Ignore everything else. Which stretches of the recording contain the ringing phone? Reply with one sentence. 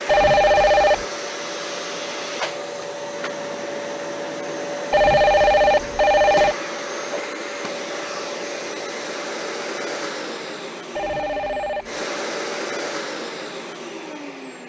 The ringing phone can be heard from 0.1 to 1.1 s, from 4.9 to 6.5 s and from 10.9 to 12.1 s.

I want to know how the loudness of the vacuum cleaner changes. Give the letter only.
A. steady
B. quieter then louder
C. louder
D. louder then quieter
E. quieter
A.